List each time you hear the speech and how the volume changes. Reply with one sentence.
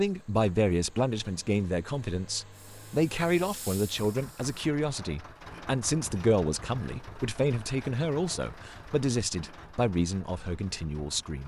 The speech can be heard from 0.0 to 11.4 s, at a steady volume.